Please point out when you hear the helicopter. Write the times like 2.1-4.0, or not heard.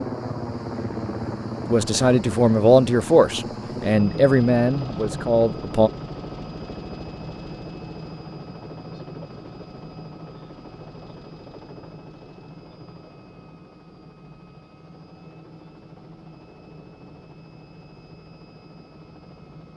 0.0-19.7.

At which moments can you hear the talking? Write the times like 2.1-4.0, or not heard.
1.6-5.9.